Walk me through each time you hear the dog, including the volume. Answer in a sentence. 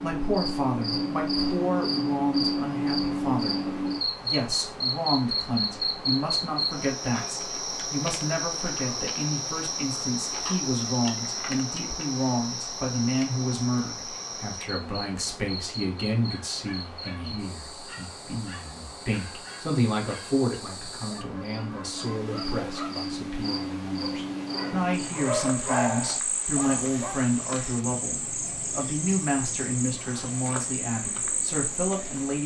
You can hear the dog from 16.2 to 27.2 s, getting louder.